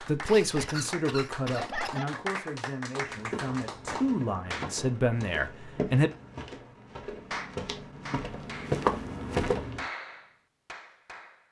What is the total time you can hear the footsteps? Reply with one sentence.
You can hear the footsteps for 7 seconds altogether.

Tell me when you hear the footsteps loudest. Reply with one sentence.
The volume of the footsteps peaks at 9 seconds.